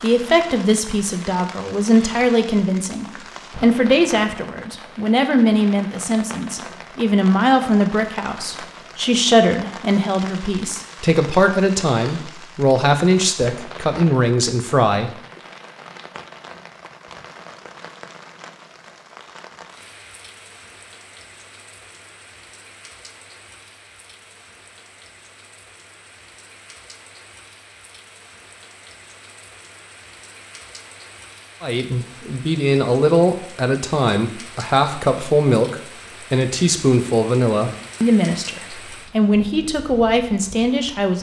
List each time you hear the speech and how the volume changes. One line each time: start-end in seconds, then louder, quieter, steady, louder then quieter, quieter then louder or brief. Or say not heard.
0.0-15.2 steady
31.6-41.1 steady.